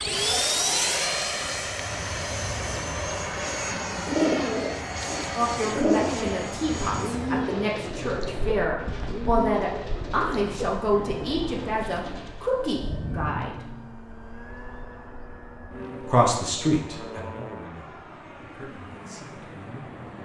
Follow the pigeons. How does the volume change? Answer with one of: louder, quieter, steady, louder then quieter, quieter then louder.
quieter.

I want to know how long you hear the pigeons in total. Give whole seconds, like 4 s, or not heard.
10 s.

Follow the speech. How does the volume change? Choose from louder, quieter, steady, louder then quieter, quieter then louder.
quieter.